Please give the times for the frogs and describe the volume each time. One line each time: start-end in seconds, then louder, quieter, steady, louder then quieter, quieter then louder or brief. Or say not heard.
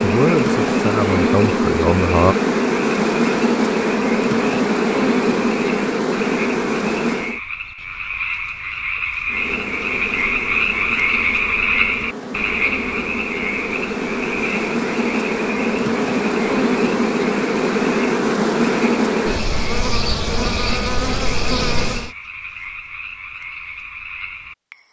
0.1-24.8 louder then quieter.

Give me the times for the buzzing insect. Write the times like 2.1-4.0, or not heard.
0.0-7.4, 9.2-22.1.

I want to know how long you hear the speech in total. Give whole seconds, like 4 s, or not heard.
2 s.